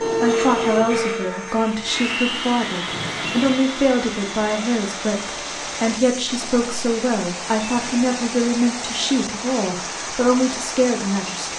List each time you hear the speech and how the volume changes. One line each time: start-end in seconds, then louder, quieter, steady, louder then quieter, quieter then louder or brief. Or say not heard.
0.0-11.5 steady.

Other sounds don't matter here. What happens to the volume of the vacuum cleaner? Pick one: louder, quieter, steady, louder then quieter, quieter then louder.
quieter.